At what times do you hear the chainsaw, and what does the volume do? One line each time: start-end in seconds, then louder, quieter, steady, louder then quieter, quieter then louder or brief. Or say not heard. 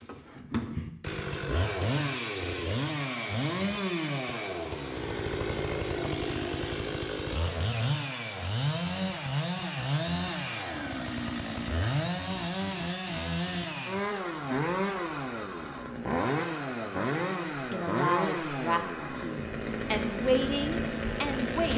0.0-21.7 steady.